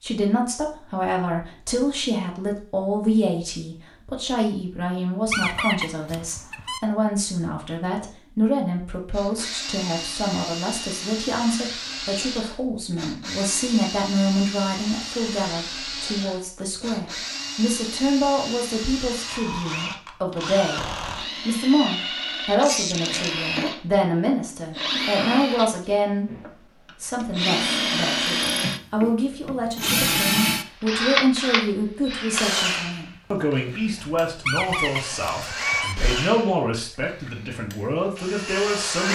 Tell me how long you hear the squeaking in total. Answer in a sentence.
The squeaking can be heard for 4 seconds in total.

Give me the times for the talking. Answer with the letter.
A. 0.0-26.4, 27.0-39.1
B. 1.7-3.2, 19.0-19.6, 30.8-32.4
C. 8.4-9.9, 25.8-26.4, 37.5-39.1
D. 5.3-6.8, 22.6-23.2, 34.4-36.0
A.